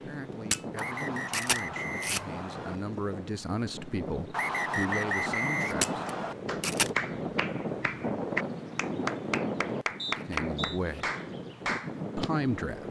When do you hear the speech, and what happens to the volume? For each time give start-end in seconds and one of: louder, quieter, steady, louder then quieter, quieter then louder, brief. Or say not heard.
0.0-6.0 louder
10.2-11.1 brief
12.2-12.8 brief.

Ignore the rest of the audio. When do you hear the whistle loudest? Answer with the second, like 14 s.
5 s.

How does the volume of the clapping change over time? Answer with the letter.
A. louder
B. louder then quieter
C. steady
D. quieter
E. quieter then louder
C.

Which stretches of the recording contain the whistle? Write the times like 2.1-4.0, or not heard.
0.8-2.8, 4.3-6.3, 9.9-10.8.